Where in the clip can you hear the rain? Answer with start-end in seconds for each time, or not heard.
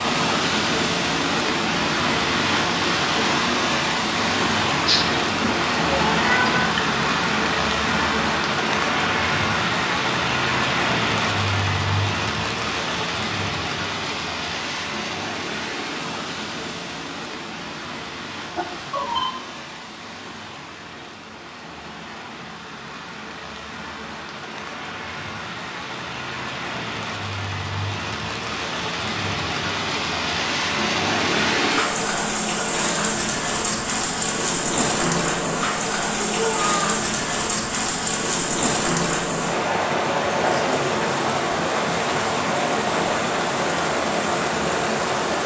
0.0-45.4.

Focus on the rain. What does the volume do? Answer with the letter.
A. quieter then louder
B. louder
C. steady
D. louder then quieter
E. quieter
A.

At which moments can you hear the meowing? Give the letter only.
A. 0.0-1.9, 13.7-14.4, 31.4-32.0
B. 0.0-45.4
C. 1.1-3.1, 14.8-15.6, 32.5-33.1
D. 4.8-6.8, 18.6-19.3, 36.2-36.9
D.